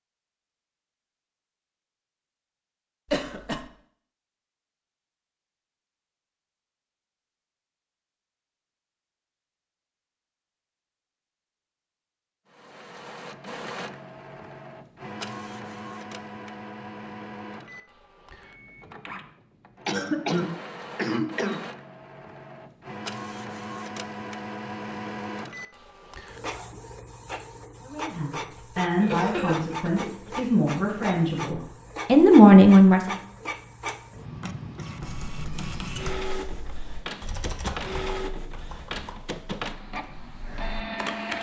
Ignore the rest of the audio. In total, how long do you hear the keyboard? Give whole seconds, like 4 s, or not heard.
6 s.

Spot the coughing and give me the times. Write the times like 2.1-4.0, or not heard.
3.1-3.6, 19.9-21.6, 29.0-30.3.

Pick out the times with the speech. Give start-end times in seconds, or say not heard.
27.9-33.1.